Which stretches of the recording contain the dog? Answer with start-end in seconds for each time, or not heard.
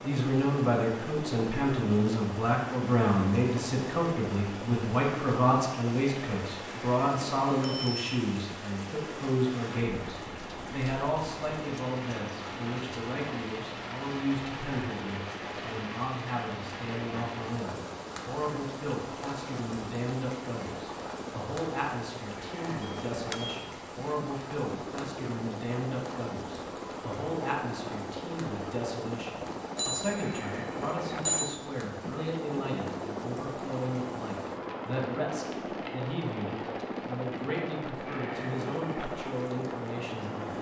not heard.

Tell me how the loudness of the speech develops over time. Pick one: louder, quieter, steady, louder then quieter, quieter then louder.
quieter.